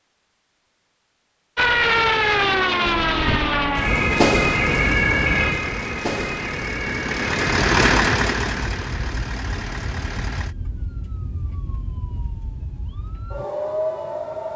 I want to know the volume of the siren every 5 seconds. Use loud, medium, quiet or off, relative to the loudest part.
loud, medium, quiet.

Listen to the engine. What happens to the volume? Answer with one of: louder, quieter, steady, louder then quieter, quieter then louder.
louder then quieter.